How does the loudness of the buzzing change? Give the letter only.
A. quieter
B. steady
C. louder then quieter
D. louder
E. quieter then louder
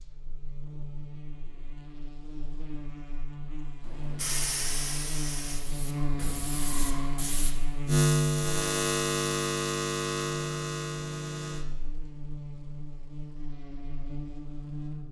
C.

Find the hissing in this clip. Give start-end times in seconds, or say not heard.
3.9-7.5.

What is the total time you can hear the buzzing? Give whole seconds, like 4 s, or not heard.
15 s.